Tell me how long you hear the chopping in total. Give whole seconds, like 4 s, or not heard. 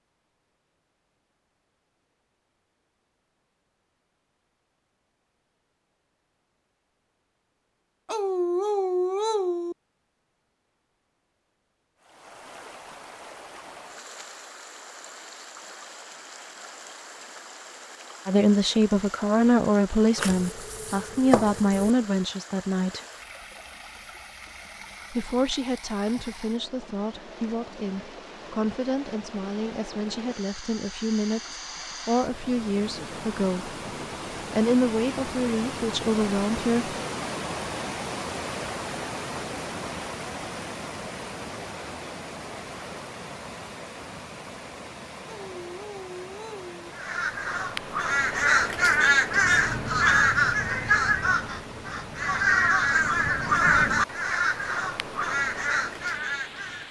2 s.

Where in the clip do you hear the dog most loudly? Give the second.
9 s.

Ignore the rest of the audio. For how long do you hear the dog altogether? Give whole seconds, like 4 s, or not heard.
3 s.